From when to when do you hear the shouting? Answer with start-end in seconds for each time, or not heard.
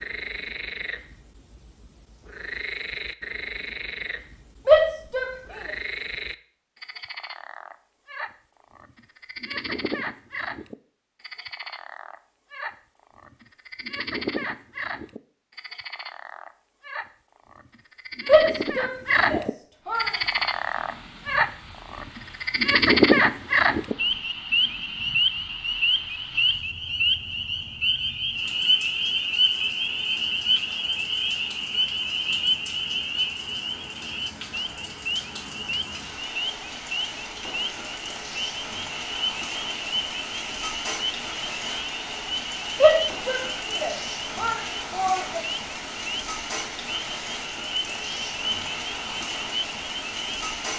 4.7-5.3, 18.2-20.1, 42.8-45.4.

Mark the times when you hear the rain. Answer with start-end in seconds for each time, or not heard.
19.8-50.7.